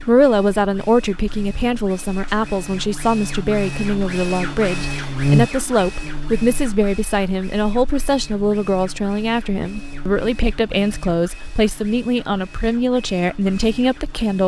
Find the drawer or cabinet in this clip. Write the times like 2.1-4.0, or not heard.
not heard.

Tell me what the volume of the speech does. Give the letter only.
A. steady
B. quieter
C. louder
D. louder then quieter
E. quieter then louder
A.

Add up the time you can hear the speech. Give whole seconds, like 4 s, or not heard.
14 s.